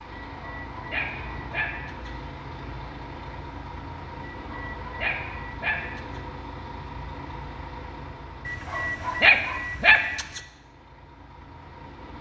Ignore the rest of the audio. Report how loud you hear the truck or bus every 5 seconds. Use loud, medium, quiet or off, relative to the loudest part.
loud, loud, medium.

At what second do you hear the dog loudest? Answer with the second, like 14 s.
9 s.